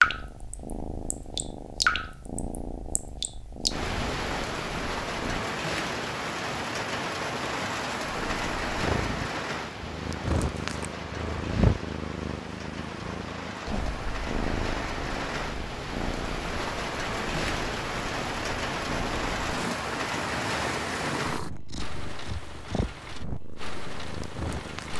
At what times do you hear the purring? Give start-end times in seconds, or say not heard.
0.0-5.4, 8.0-24.9.